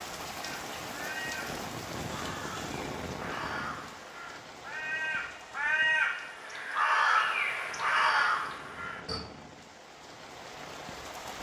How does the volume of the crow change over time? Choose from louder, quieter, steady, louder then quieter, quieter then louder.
louder.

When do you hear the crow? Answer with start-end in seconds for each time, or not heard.
0.4-9.2.